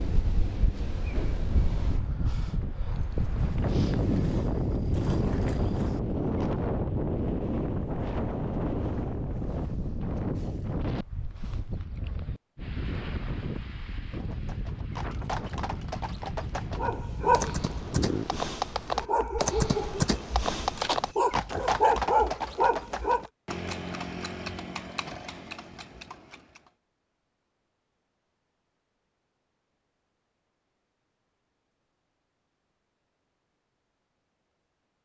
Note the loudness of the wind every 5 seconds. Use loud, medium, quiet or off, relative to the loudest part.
loud, loud, medium, medium, off, off, off.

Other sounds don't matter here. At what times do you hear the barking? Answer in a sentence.
You can hear the barking from 16.8 to 23.2 s.